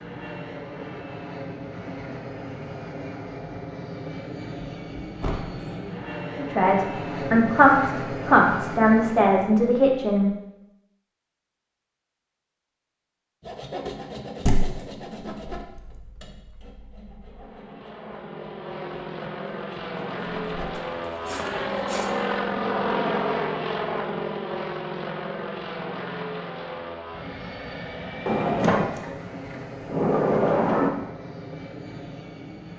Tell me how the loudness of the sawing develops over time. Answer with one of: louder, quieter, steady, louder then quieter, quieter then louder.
quieter then louder.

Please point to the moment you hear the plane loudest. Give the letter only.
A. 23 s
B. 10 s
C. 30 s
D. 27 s
A.